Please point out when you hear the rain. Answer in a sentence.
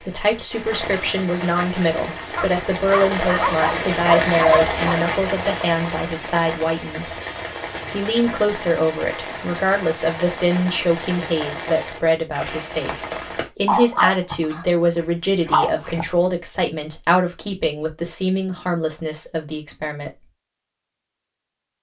The rain can be heard from 0.0 to 13.5 s.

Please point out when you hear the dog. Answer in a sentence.
You can hear the dog from 2.4 to 5.0 s and from 13.7 to 16.1 s.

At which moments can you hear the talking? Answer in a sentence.
You can hear the talking from 0.0 to 7.2 s and from 7.9 to 20.2 s.